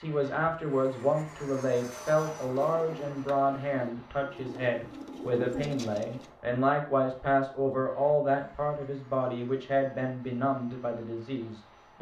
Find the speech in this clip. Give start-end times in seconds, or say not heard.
0.0-11.9.